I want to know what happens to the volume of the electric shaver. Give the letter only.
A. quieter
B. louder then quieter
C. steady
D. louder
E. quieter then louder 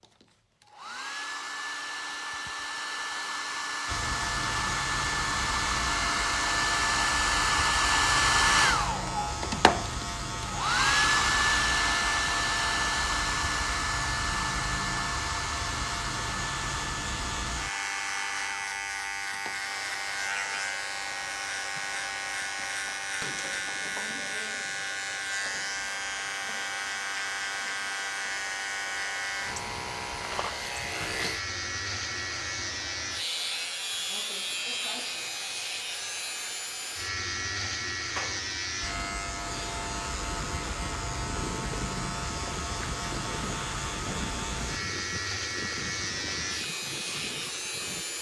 C.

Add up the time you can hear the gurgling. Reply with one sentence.
The gurgling can be heard for 8 seconds in total.